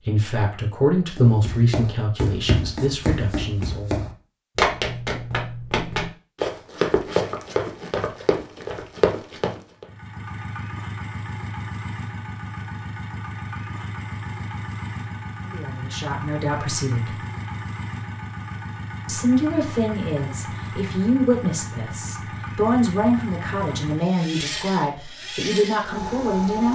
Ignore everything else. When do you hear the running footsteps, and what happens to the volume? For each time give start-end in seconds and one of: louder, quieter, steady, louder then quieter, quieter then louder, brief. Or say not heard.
1.1-9.8 steady.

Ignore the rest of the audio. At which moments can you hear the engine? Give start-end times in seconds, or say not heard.
9.8-26.7.